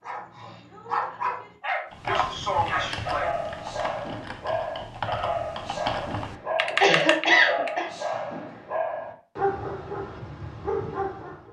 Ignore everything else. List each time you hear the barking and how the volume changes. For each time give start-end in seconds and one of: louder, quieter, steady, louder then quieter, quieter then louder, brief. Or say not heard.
0.0-11.4 steady.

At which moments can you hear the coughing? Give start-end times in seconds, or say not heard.
2.0-3.4, 6.7-7.9.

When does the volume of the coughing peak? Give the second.
7 s.